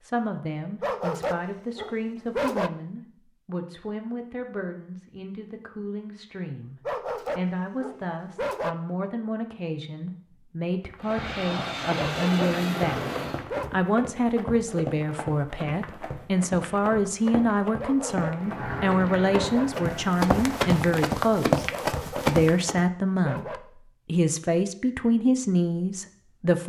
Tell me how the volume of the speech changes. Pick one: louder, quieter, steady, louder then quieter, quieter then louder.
louder.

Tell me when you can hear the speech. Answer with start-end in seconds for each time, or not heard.
0.0-13.1, 13.7-21.6, 22.2-26.6.